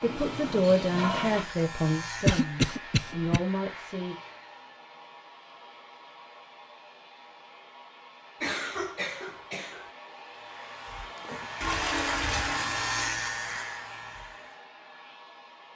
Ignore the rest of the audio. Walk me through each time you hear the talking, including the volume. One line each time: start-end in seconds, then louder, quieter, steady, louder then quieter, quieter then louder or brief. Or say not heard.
0.0-4.2 quieter then louder.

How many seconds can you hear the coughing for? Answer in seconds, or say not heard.
3 s.